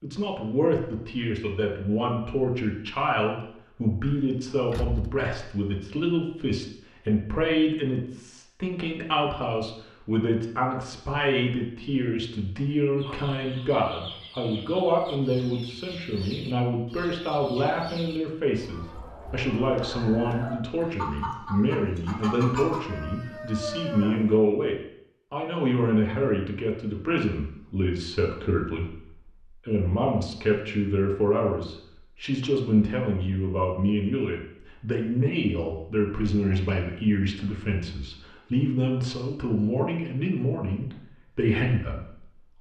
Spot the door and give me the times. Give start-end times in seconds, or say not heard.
4.7-5.2.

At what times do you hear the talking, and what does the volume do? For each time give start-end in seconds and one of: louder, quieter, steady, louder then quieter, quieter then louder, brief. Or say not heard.
0.0-42.5 steady.